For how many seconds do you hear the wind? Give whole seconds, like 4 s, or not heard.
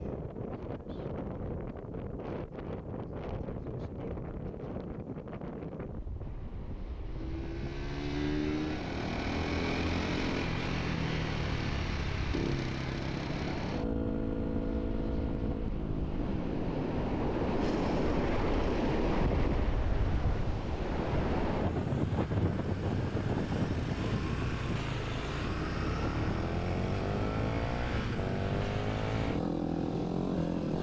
31 s.